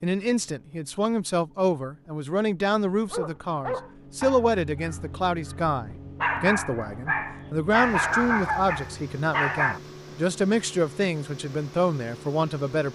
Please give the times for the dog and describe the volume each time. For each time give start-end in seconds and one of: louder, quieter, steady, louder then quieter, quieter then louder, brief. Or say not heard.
3.1-9.8 quieter then louder.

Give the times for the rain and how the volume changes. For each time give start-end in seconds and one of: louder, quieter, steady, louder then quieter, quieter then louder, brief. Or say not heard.
not heard.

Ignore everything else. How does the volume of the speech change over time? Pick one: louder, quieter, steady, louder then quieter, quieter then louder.
steady.